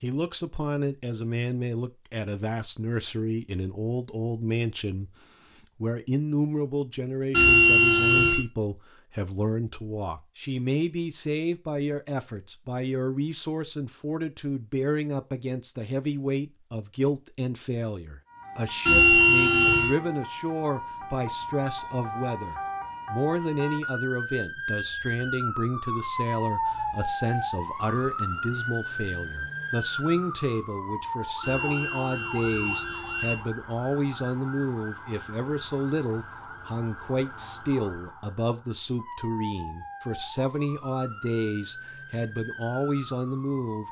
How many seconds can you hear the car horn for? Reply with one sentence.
You can hear the car horn for 4 seconds altogether.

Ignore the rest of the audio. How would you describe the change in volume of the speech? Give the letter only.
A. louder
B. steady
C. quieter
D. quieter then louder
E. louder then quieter
B.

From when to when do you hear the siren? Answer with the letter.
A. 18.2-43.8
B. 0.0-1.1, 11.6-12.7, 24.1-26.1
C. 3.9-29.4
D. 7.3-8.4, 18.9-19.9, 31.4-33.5
A.